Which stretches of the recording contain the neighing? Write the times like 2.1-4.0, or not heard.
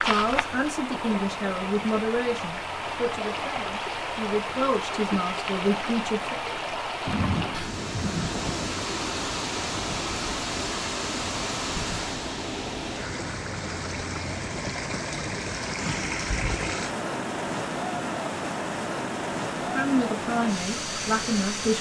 not heard.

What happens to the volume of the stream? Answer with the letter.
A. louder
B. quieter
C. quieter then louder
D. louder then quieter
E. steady
E.